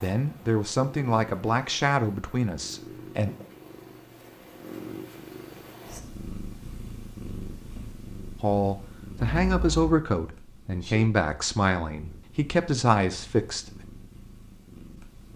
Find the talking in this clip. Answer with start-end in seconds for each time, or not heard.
0.0-3.3, 8.4-13.7.